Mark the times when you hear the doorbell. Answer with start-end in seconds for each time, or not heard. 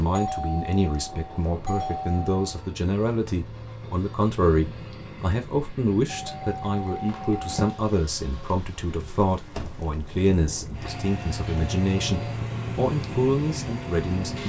0.1-2.6, 6.0-7.5, 10.8-12.3.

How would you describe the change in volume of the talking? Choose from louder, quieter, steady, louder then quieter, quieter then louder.
steady.